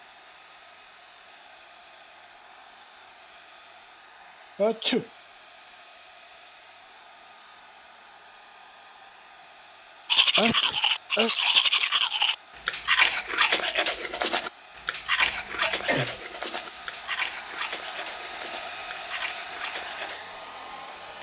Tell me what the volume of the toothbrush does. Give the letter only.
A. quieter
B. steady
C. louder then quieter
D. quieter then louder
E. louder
A.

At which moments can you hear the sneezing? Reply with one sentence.
The sneezing can be heard from 4.5 to 5.0 s, from 10.3 to 11.3 s and from 15.2 to 16.2 s.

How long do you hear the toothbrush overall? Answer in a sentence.
The toothbrush can be heard for 10 seconds in total.